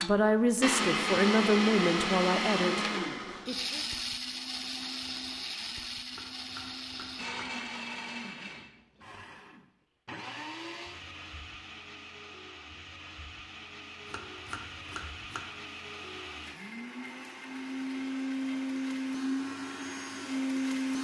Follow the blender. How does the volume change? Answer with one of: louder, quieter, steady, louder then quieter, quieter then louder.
quieter then louder.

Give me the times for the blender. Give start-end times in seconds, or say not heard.
0.0-20.9.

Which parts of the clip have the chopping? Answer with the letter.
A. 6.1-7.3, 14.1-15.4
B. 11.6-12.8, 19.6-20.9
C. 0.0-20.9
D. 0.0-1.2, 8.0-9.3
A.